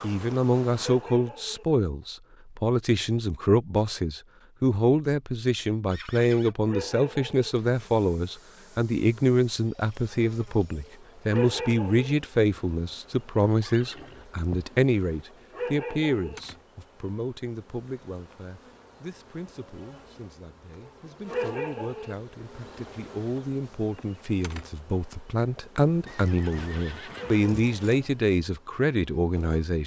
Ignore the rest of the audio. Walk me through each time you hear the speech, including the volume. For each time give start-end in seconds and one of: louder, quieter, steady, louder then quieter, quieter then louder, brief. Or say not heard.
0.0-29.8 quieter then louder.